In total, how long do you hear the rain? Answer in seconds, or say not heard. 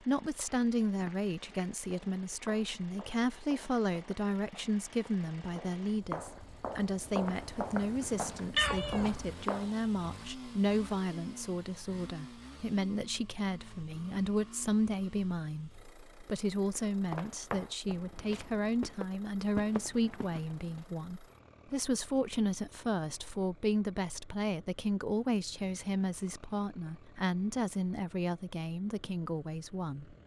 not heard.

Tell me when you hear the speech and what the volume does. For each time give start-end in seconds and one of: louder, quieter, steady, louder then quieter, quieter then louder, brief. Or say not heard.
0.1-30.1 steady.